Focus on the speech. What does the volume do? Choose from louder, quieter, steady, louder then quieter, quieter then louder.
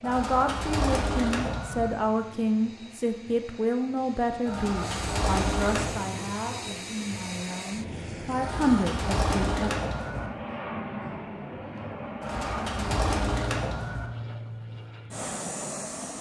quieter then louder.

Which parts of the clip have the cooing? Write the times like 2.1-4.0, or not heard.
0.0-1.9, 4.5-6.0, 8.4-10.3, 12.2-14.1.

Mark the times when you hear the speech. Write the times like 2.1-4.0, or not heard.
0.0-9.7.